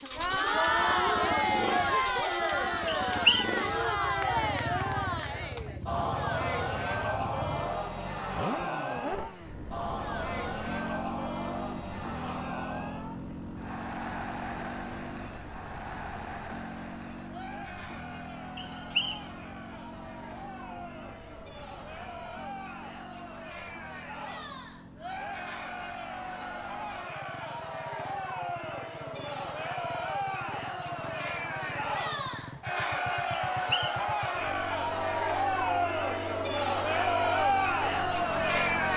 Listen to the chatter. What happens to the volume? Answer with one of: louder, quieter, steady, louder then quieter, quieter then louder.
quieter then louder.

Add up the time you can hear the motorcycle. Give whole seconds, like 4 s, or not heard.
39 s.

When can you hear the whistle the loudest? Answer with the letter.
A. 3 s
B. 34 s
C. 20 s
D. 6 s
A.